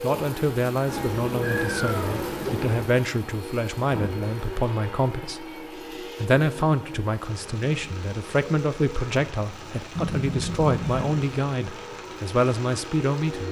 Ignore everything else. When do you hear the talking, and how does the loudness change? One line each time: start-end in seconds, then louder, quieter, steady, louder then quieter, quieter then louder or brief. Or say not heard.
0.0-13.4 steady.